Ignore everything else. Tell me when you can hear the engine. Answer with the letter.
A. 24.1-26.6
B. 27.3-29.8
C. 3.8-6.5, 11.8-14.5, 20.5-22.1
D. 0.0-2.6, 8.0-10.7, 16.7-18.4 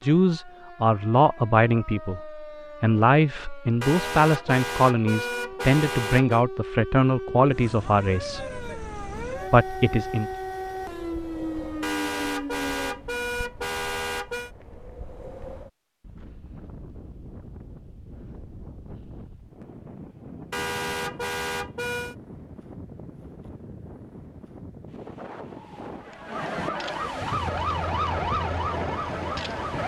B.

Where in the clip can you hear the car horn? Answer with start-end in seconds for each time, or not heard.
3.8-6.5, 11.8-14.5, 20.5-22.1.